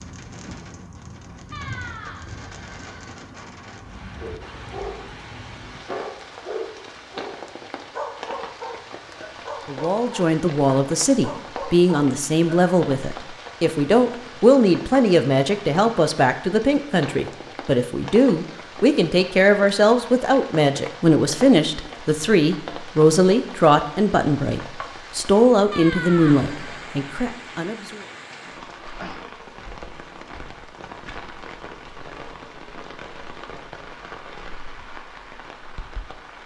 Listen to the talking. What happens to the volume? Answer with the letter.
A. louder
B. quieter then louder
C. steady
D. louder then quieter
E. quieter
C.